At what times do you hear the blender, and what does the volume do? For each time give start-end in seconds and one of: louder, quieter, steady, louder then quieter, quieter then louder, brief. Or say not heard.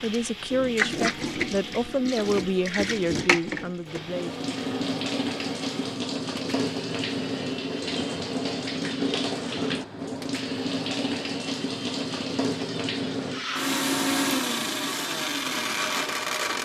0.0-16.6 louder.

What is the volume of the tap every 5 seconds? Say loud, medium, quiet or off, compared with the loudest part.
loud, loud, loud, quiet.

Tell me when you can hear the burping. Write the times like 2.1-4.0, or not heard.
not heard.